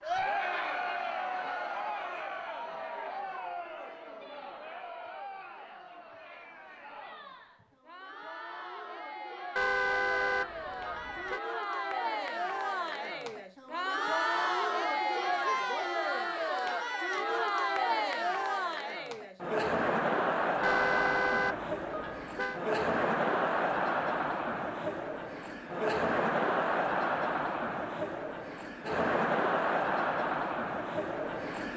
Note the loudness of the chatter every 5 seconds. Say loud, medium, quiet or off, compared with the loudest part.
medium, quiet, loud, loud, loud, loud, loud.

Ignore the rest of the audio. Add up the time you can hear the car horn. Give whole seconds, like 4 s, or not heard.
4 s.